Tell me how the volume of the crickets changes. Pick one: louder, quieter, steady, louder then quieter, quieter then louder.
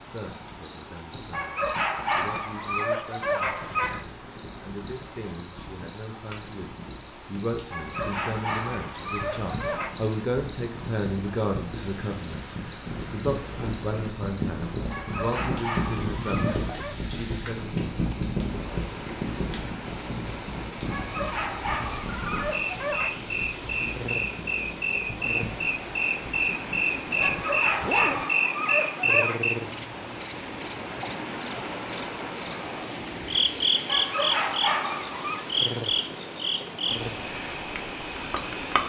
louder.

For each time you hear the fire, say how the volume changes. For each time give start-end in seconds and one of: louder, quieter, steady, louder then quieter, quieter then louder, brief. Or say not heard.
0.0-26.9 louder then quieter.